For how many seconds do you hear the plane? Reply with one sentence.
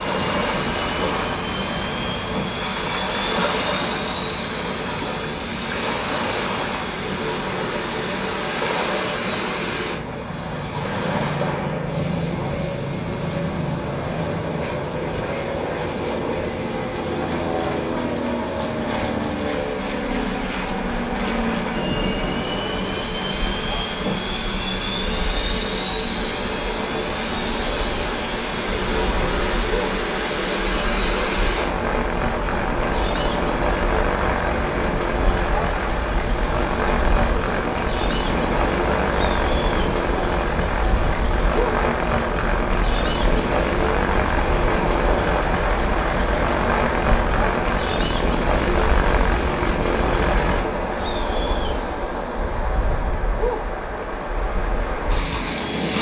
The plane can be heard for 51 seconds in total.